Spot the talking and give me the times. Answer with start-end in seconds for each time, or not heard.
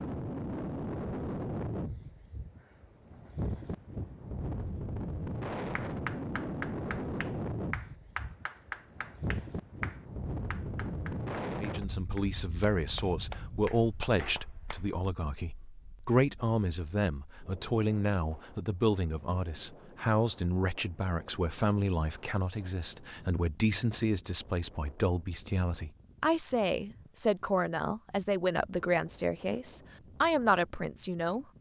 11.6-31.4.